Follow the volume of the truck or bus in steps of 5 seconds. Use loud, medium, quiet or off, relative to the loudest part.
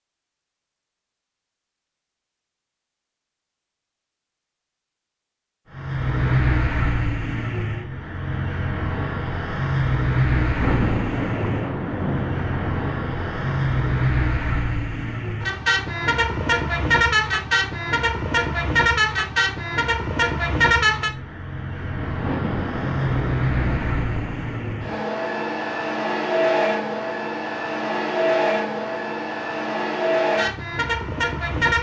off, loud, loud, loud, loud, loud, loud.